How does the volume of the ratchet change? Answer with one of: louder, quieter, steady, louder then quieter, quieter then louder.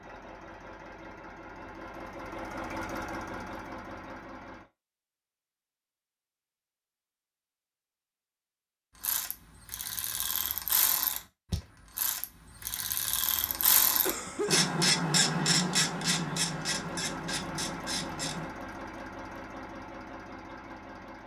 louder then quieter.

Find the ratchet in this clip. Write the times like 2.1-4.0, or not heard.
9.0-18.5.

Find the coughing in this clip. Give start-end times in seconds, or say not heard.
14.1-14.8.